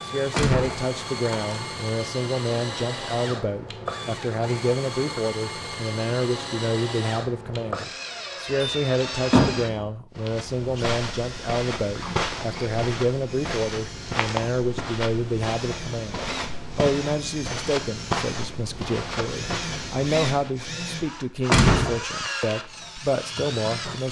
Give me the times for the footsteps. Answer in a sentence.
The footsteps can be heard from 10.2 to 20.6 s.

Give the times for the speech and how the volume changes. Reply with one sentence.
You can hear the speech from 0.0 to 24.0 s, at a steady volume.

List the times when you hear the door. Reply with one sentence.
The door can be heard from 0.3 to 1.7 s, from 8.4 to 9.8 s and from 21.4 to 22.0 s.